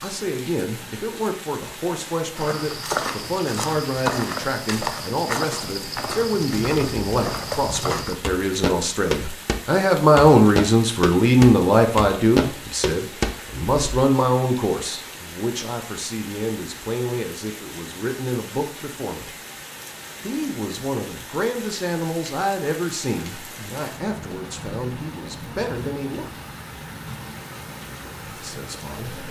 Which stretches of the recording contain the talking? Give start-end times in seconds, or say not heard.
0.0-19.3, 20.2-26.3, 28.2-29.2.